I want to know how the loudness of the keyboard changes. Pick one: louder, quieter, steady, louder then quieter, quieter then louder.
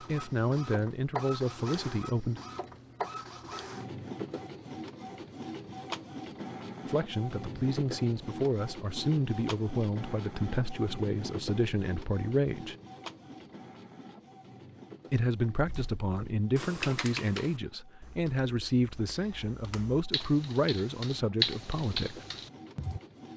quieter then louder.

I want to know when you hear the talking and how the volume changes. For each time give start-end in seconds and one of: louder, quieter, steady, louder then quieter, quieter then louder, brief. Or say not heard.
0.0-2.4 brief
6.8-12.8 steady
15.1-22.2 steady.